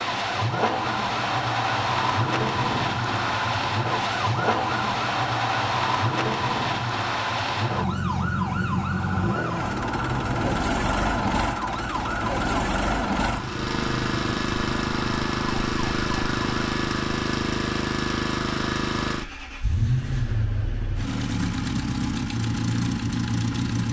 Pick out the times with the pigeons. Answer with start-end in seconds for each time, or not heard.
not heard.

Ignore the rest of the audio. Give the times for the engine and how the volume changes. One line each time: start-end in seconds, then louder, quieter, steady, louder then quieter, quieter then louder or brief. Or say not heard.
0.0-23.8 steady.